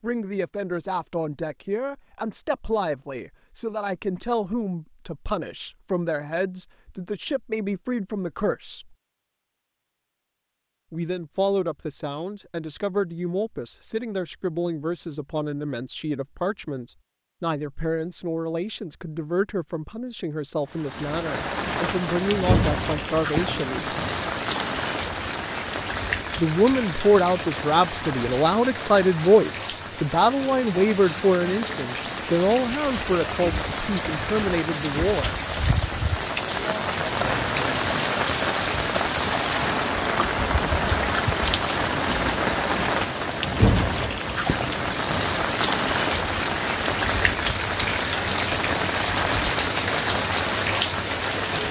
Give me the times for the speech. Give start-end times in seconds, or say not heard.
0.0-8.9, 10.9-23.9, 26.4-35.4.